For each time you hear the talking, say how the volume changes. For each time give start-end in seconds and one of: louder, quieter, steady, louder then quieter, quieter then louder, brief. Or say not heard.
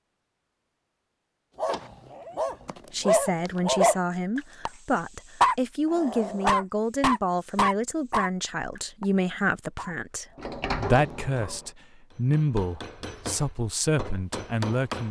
2.9-15.0 steady.